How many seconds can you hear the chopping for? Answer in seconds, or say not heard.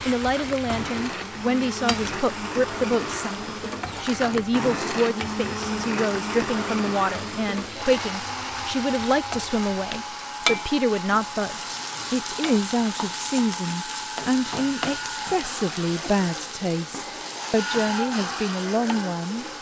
not heard.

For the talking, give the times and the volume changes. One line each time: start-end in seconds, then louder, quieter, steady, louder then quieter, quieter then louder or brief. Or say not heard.
0.1-19.4 steady.